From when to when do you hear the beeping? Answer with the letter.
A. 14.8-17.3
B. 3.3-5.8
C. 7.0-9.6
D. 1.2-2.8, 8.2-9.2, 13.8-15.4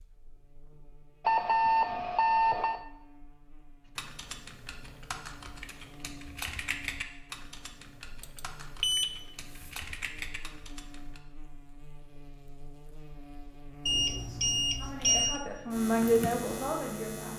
D.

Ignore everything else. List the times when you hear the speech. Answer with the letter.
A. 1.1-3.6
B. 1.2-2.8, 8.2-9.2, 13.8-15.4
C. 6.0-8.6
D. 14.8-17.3
D.